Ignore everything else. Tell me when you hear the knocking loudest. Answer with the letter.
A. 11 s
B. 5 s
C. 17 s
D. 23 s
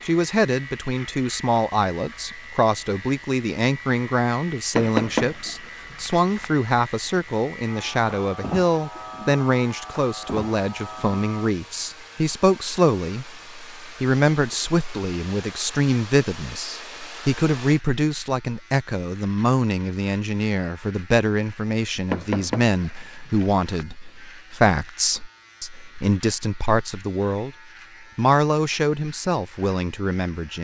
B.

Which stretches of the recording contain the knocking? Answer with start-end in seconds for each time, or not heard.
4.8-6.5, 22.1-23.9.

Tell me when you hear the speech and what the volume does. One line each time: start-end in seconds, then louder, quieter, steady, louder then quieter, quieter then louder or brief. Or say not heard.
0.1-27.6 steady
28.1-30.5 brief.